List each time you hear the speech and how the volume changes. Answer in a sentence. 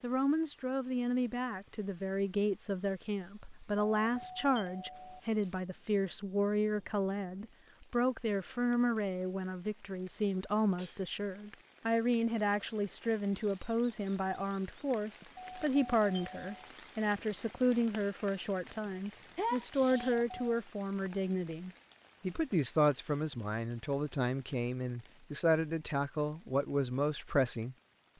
You can hear the speech from 0.0 to 28.1 s, at a steady volume.